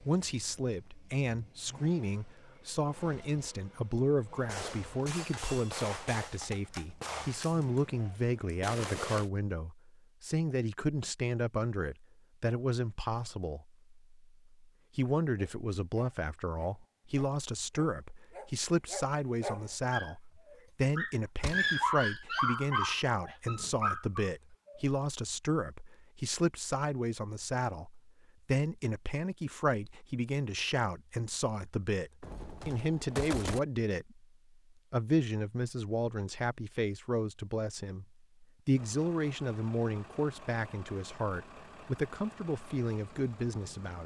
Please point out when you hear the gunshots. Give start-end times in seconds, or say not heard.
4.5-9.3, 21.4-21.8, 32.2-33.6.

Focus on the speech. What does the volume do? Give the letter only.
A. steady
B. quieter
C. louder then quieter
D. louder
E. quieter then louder
A.